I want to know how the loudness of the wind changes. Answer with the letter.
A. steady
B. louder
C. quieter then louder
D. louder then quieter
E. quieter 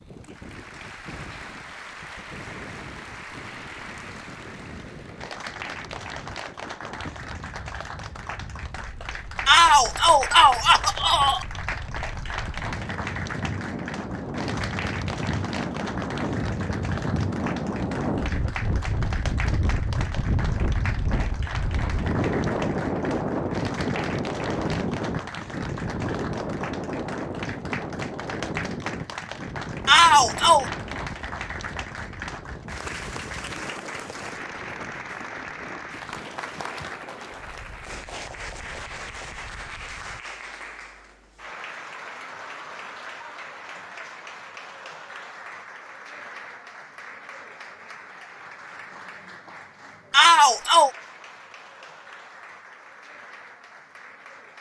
D.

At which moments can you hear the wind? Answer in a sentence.
You can hear the wind from 0.0 to 40.2 s.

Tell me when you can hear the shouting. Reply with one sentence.
You can hear the shouting from 9.4 to 11.4 s, from 29.9 to 30.6 s and from 50.1 to 50.9 s.